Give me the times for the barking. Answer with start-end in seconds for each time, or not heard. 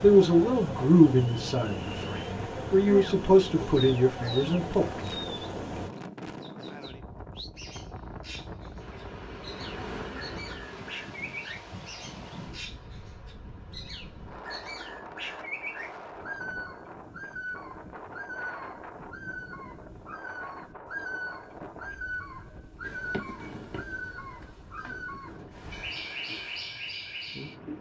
not heard.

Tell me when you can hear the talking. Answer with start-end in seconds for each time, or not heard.
0.0-4.9.